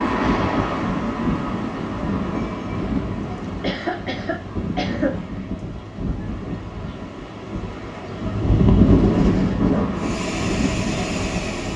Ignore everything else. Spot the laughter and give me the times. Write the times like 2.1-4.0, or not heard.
3.5-5.2.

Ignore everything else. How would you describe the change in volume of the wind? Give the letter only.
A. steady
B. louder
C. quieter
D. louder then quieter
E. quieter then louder
E.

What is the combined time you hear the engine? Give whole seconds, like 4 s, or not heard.
2 s.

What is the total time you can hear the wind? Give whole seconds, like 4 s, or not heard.
12 s.